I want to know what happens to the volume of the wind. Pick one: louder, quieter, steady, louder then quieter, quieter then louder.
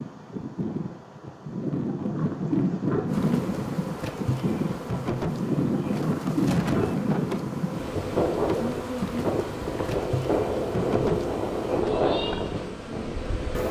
steady.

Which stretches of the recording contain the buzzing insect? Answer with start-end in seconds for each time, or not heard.
3.0-13.6.